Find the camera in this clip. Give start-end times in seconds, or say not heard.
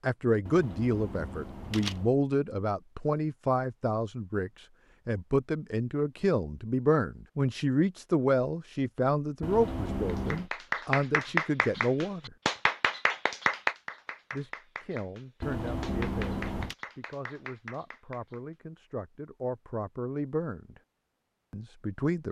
0.5-2.1, 9.4-10.5, 15.4-16.8.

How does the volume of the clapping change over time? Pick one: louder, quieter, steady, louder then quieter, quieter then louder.
quieter.